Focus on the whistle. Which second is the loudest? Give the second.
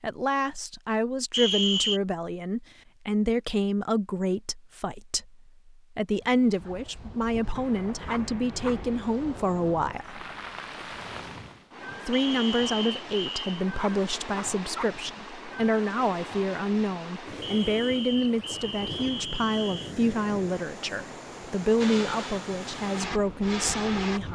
2 s.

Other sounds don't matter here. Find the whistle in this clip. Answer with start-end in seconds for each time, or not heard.
1.3-2.0, 12.1-13.4, 17.4-19.9.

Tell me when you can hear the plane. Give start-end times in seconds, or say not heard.
21.8-24.3.